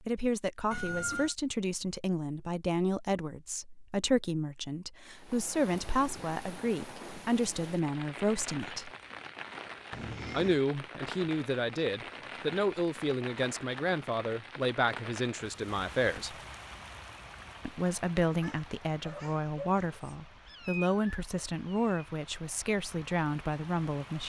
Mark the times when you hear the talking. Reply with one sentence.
You can hear the talking from 0.0 to 8.9 s, from 10.3 to 16.4 s and from 17.6 to 24.2 s.